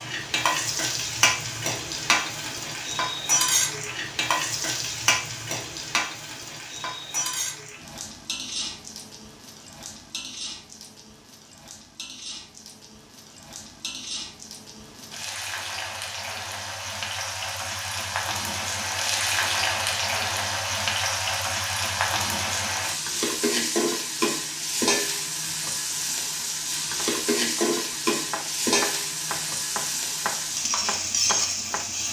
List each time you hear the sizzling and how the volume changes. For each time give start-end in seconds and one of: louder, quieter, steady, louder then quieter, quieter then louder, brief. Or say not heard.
0.0-32.0 quieter then louder.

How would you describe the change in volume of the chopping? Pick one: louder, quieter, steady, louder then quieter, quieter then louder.
louder.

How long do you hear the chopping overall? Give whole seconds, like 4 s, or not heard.
5 s.